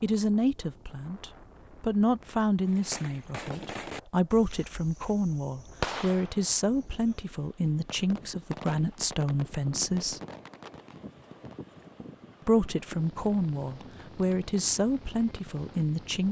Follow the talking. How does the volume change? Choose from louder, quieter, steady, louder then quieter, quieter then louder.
steady.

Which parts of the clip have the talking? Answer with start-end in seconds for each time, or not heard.
0.0-10.2, 12.4-16.2.